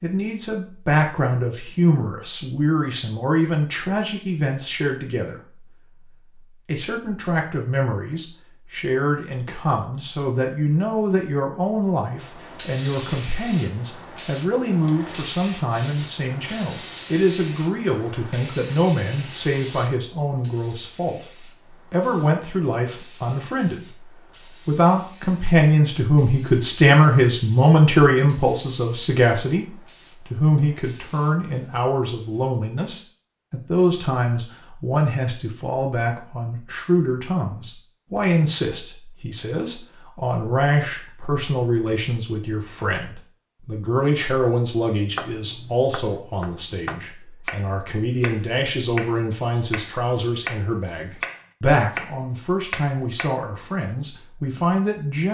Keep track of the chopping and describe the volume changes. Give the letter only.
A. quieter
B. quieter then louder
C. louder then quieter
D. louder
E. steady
D.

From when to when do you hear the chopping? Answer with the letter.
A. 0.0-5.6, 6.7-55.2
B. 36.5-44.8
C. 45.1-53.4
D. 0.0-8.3
C.